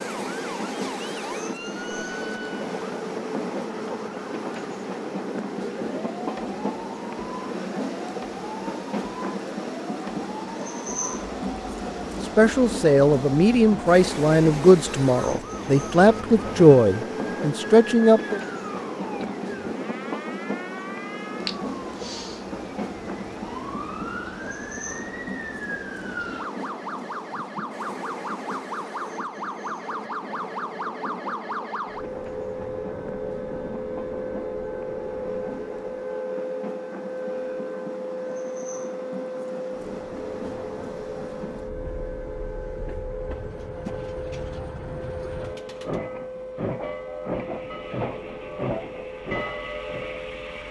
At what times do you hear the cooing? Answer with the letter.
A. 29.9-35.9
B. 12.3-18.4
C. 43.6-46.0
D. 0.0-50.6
C.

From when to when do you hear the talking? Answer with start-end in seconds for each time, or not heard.
12.3-18.4.